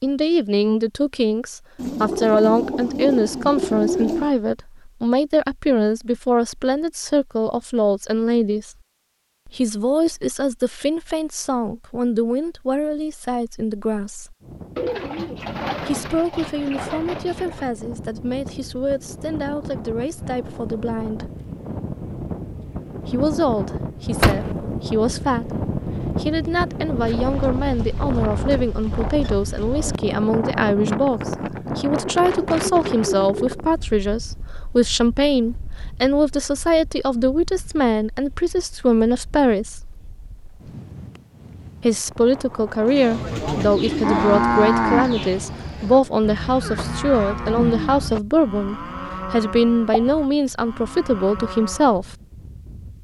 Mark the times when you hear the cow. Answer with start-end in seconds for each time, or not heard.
43.0-52.0.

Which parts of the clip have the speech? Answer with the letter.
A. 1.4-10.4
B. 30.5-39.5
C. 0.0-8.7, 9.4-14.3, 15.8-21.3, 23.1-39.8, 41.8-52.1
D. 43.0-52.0
C.